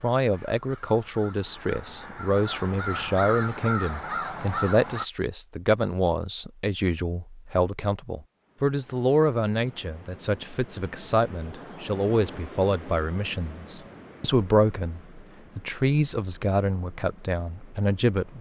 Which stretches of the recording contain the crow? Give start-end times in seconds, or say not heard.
0.0-5.0.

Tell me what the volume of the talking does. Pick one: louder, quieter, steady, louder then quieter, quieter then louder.
steady.